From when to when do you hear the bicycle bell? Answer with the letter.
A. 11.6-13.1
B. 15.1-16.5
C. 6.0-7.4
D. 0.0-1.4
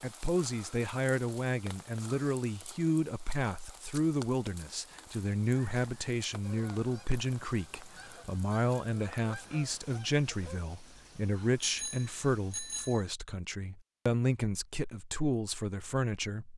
A.